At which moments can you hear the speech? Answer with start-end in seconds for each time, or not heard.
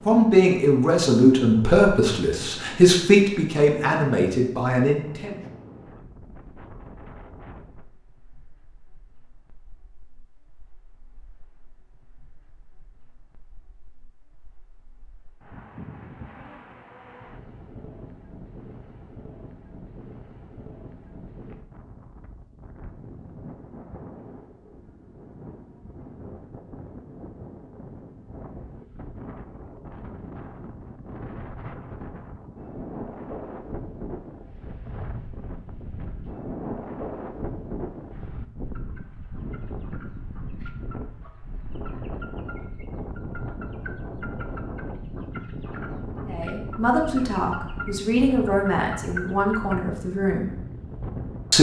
0.1-5.4, 46.2-50.5.